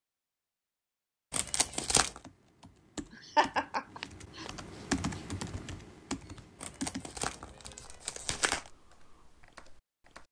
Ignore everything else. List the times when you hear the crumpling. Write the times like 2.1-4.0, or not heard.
1.3-2.2, 6.6-8.7.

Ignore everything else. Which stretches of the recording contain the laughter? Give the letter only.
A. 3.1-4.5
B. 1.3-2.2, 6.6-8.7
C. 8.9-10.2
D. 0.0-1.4
A.